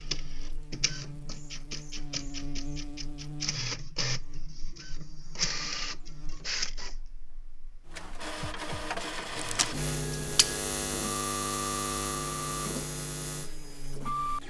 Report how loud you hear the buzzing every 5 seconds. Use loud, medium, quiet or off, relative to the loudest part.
medium, medium, loud.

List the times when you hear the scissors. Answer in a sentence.
You can hear the scissors from 9.3 to 10.6 s.